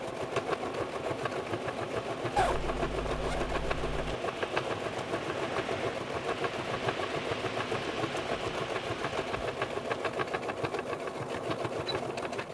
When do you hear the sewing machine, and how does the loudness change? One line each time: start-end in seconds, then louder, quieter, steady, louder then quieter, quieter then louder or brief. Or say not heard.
0.0-12.4 steady.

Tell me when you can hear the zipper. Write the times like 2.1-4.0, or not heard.
2.4-4.2.